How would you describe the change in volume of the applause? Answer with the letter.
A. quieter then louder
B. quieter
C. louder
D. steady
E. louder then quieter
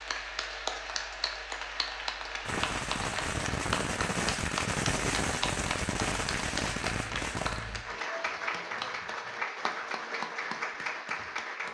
D.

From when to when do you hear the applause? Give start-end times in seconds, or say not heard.
0.0-11.6.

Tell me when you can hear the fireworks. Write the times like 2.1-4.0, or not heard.
2.5-7.8.